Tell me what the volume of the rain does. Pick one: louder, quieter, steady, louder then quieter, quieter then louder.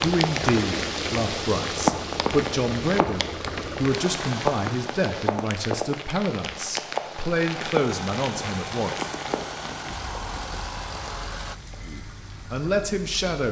quieter.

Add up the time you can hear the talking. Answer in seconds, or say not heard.
11 s.